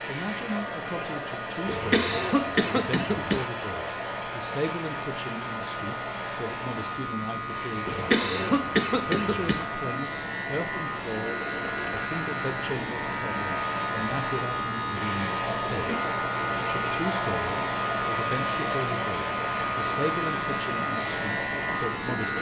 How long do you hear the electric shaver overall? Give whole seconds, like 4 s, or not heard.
22 s.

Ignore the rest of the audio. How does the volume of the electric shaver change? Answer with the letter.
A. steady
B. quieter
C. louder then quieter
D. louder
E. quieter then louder
D.